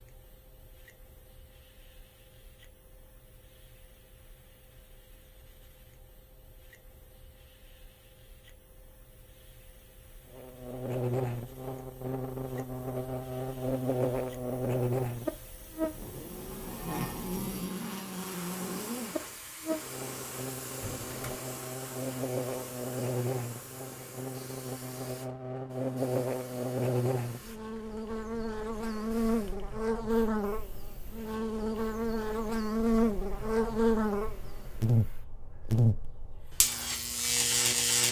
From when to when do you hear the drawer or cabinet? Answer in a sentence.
The drawer or cabinet can be heard from 20.8 to 21.5 s.